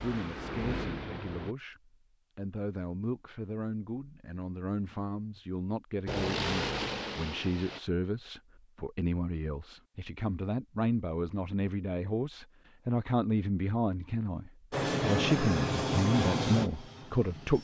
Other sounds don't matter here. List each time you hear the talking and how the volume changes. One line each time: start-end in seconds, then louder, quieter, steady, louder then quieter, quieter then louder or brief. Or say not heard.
0.0-17.5 louder.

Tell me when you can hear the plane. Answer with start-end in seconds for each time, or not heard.
0.0-1.6, 6.0-7.8, 14.7-17.5.